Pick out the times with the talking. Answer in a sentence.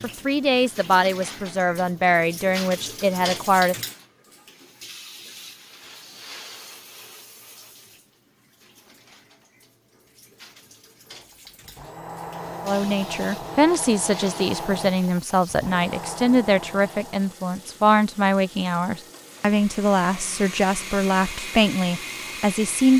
You can hear the talking from 0.0 to 3.8 s and from 12.7 to 22.9 s.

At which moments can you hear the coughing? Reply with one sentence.
You can't hear the coughing here.